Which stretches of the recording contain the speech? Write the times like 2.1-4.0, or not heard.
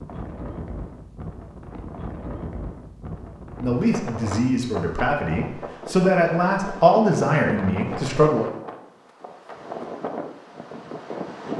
3.5-8.5.